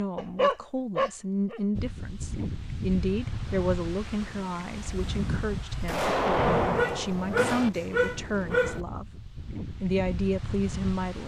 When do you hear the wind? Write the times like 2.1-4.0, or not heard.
1.7-11.2.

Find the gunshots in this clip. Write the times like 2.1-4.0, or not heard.
5.8-7.7.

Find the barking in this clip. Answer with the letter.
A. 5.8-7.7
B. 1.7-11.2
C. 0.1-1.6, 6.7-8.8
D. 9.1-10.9
C.